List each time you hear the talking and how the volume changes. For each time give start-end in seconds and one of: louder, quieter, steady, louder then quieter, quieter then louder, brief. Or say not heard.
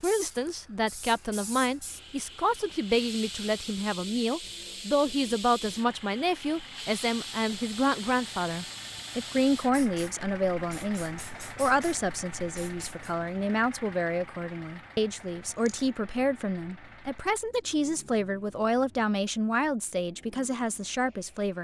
0.0-21.5 steady.